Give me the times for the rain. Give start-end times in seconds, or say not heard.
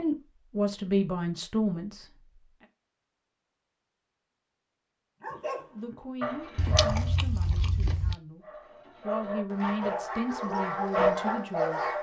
not heard.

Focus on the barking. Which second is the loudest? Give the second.
11 s.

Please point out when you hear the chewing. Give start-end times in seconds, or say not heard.
6.5-8.2.